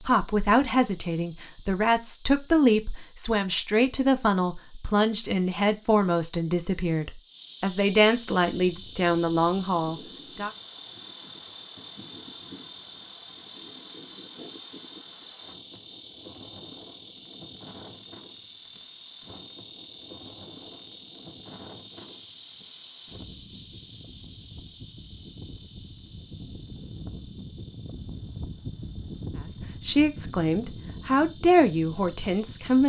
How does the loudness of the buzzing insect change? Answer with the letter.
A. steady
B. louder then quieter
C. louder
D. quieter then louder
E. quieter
B.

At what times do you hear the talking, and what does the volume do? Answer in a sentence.
The talking can be heard from 0.1 to 10.5 s, at a steady volume; and briefly from 29.8 to 32.8 s.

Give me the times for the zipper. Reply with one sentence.
You can't hear the zipper here.